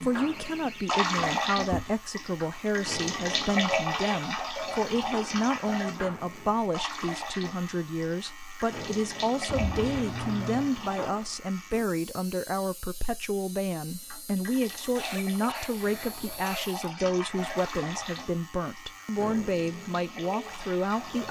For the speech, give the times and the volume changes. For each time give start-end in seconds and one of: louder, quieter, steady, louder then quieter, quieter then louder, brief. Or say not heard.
0.0-21.2 steady.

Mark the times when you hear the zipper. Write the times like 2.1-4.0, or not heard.
not heard.